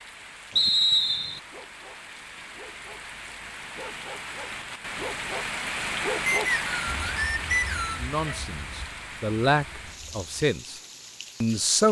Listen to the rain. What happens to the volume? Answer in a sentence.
The volume of the rain goes up, then down.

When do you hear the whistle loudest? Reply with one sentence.
The loudest moment of the whistle is at 1 second.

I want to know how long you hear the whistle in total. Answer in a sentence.
You can hear the whistle for 3 seconds altogether.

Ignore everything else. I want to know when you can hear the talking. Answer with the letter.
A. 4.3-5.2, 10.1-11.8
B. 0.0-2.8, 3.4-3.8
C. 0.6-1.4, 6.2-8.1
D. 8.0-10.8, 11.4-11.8
D.